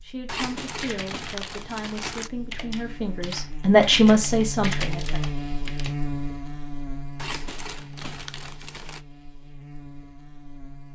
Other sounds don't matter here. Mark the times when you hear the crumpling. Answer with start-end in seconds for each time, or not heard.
0.2-2.3, 7.2-9.0.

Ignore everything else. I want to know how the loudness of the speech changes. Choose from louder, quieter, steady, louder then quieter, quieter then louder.
louder.